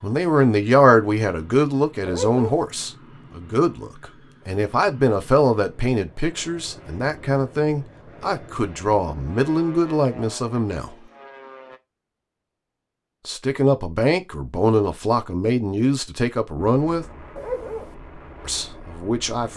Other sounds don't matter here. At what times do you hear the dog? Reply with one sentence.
You can hear the dog from 2.0 to 2.6 s and from 17.4 to 17.9 s.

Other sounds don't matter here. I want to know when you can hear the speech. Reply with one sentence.
The speech can be heard from 0.0 to 10.9 s, from 13.2 to 17.1 s and from 18.4 to 19.5 s.